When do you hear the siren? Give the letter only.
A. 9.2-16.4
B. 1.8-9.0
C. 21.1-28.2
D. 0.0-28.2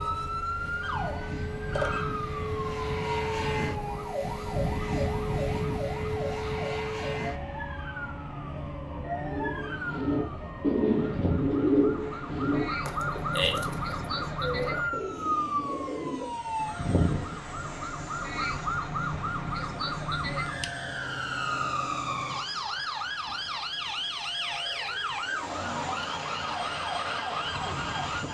D.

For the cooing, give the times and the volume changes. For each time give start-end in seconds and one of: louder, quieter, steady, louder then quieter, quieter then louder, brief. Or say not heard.
9.2-16.4 quieter.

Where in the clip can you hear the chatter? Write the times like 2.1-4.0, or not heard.
not heard.